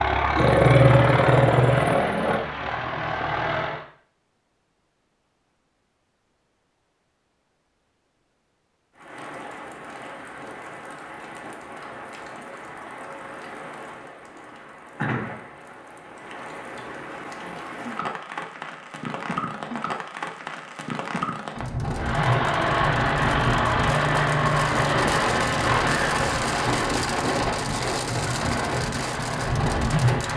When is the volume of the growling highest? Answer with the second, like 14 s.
1 s.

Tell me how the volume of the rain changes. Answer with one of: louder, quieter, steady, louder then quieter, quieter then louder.
louder.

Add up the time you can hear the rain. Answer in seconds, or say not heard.
21 s.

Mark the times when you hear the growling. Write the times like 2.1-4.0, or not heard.
0.3-2.4.